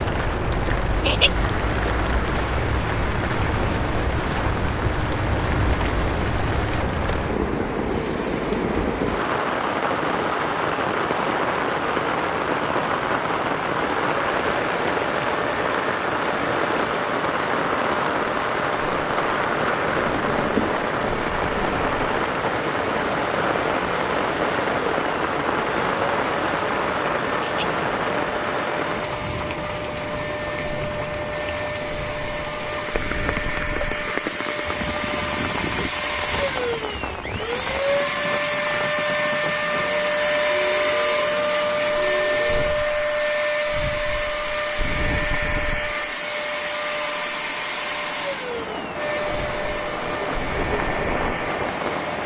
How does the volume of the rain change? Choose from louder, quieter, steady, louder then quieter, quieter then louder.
quieter.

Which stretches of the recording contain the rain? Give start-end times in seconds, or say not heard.
0.0-52.2.